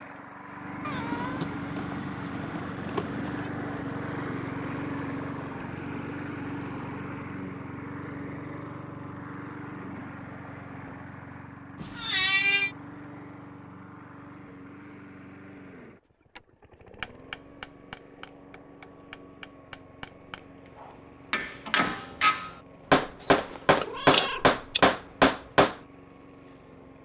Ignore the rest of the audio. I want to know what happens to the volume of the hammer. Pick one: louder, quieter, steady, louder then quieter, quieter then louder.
louder.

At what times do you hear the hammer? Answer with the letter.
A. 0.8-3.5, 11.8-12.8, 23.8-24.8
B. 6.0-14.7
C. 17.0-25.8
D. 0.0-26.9
C.